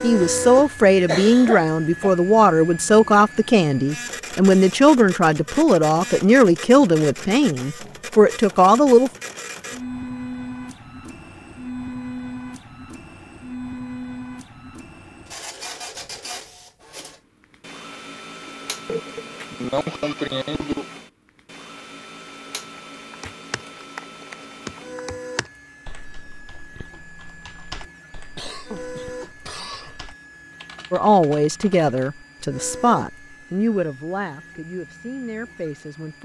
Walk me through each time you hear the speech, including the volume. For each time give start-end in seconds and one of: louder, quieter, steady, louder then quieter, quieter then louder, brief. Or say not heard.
0.0-9.1 steady
30.9-36.2 quieter.